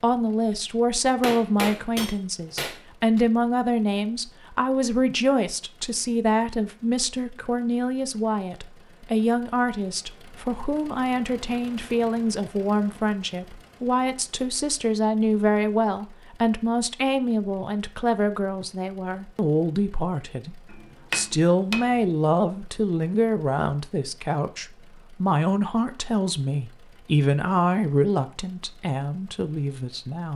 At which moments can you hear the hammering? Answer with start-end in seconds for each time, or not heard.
1.2-3.2, 20.7-22.1.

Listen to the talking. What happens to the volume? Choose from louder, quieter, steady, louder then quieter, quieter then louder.
steady.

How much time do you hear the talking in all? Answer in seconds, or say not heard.
30 s.